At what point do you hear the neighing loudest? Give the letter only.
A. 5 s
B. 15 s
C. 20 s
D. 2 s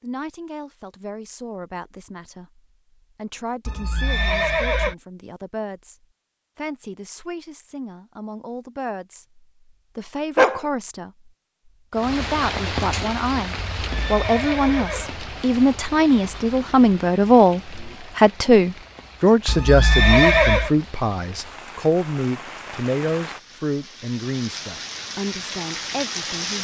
C.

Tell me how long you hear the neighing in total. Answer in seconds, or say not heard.
4 s.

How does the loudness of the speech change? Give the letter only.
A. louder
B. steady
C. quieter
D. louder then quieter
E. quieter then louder
D.